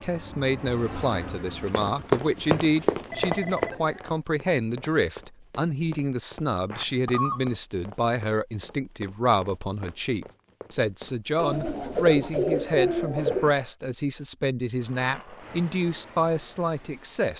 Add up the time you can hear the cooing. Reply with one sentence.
You can hear the cooing for 4 seconds altogether.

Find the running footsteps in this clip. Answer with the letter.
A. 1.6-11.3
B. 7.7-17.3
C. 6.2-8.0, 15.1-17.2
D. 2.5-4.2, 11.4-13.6
A.